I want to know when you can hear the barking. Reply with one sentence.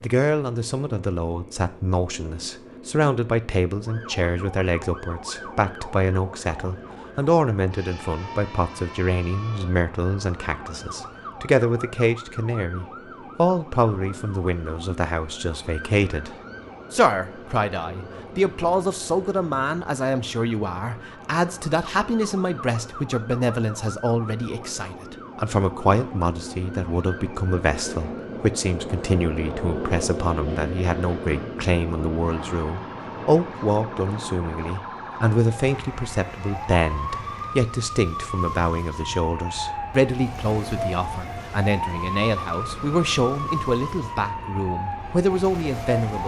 You can't hear the barking here.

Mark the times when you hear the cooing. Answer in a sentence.
You can't hear the cooing here.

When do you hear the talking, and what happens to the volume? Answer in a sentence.
The talking can be heard from 0.0 to 46.2 s, at a steady volume.